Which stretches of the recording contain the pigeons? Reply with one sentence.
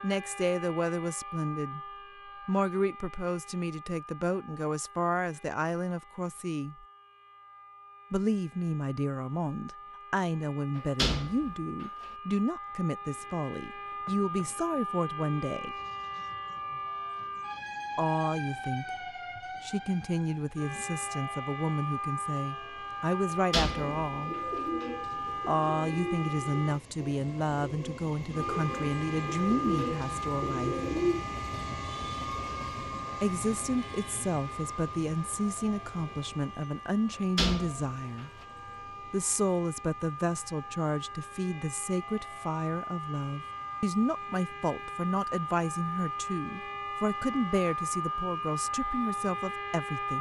You can hear the pigeons from 23.7 to 31.2 s.